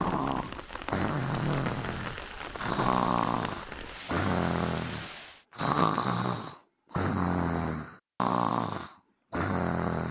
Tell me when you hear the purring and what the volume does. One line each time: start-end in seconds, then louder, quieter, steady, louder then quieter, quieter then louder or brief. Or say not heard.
not heard.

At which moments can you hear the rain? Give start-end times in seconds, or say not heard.
0.0-5.5.